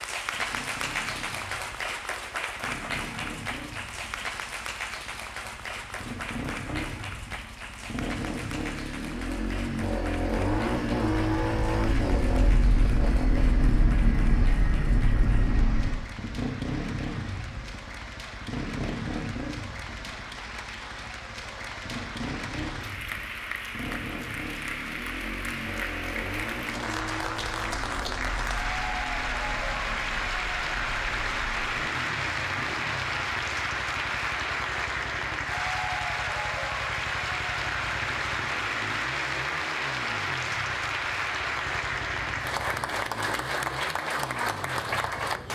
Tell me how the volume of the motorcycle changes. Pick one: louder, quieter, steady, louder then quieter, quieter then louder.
louder then quieter.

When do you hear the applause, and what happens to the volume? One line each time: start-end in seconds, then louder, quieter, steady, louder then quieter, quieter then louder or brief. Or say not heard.
0.0-45.5 quieter then louder.